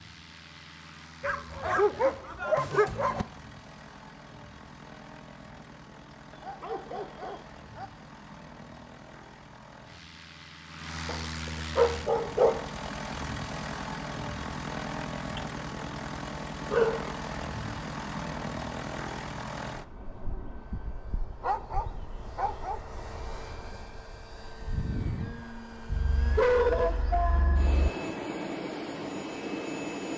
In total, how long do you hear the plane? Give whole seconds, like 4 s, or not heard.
30 s.